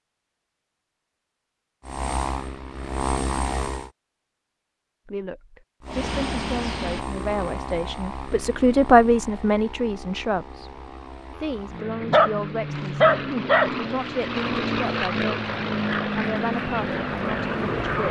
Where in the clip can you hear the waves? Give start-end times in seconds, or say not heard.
not heard.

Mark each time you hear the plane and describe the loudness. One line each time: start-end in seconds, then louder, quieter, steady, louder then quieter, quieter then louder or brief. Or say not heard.
1.9-3.9 brief
5.8-18.0 quieter then louder.